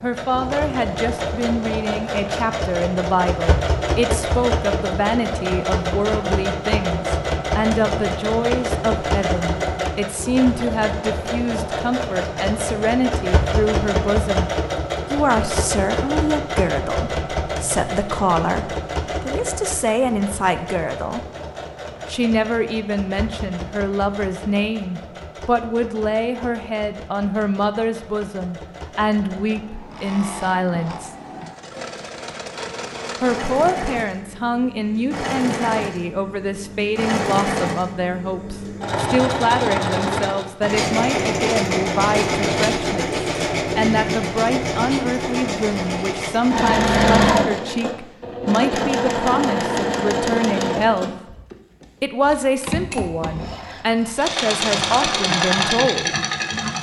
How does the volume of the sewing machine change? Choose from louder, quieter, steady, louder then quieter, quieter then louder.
quieter then louder.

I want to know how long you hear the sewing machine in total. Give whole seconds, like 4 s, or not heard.
57 s.